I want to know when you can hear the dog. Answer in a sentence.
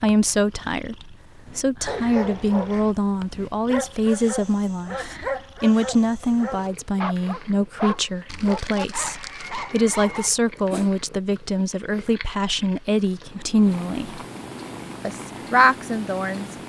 You can hear the dog from 1.4 to 10.9 s.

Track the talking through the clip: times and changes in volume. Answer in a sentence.
You can hear the talking from 0.0 to 14.2 s, at a steady volume; and briefly from 15.0 to 16.4 s.